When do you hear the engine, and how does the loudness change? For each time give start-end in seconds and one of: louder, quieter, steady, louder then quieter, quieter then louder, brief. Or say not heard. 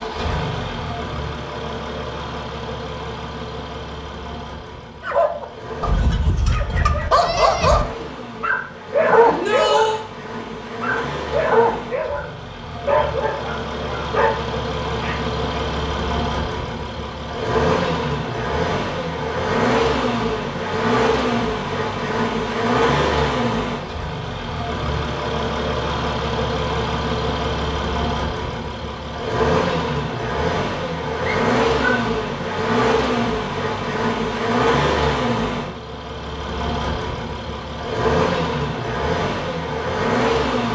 0.0-40.7 louder.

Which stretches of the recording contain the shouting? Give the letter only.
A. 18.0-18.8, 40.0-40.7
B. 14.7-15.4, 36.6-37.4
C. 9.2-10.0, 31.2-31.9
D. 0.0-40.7
C.